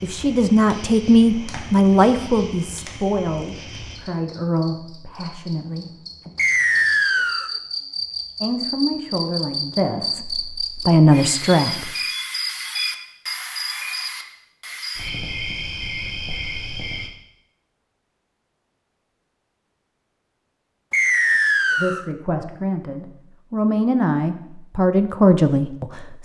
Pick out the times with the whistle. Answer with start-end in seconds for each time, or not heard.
6.3-7.5, 20.9-22.1.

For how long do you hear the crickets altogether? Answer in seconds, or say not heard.
17 s.